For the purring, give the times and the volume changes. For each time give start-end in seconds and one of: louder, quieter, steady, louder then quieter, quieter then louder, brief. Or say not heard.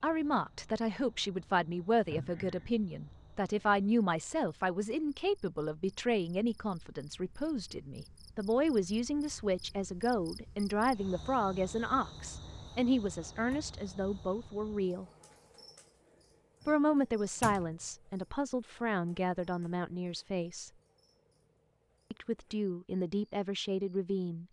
not heard.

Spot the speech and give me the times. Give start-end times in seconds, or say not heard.
0.0-15.1, 16.6-20.7, 22.1-24.4.